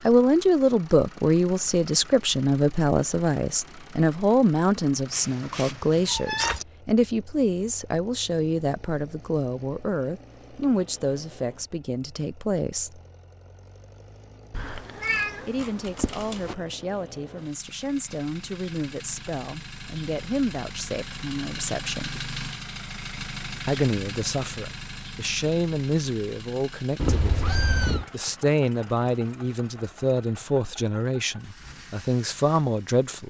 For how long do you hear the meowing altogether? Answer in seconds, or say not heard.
5 s.